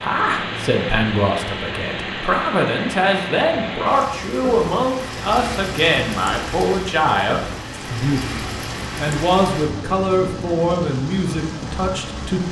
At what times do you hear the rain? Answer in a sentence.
You can hear the rain from 0.0 to 12.4 s.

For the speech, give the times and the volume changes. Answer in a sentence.
The speech can be heard from 0.0 to 12.4 s, at a steady volume.